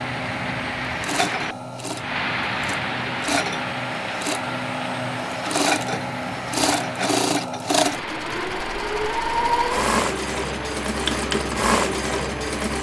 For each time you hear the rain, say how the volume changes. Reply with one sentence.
You can hear the rain from 0.0 to 12.7 s, getting quieter.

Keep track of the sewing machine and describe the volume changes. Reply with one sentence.
The volume of the sewing machine goes up.